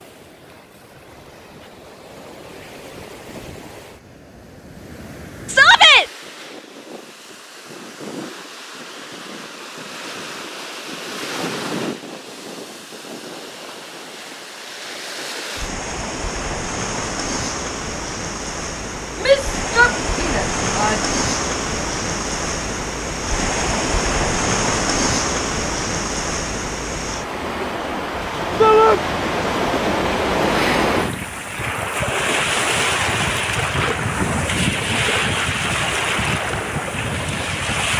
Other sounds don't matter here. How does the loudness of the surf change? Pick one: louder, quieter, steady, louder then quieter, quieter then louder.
louder.